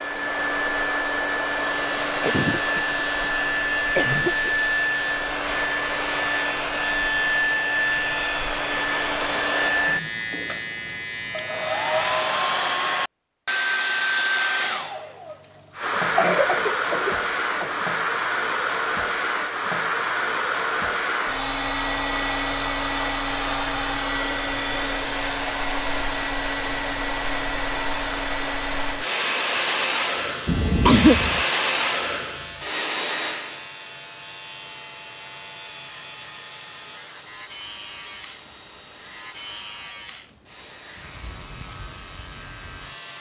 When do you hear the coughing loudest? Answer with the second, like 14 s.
31 s.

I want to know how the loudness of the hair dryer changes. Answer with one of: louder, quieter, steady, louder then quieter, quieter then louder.
quieter.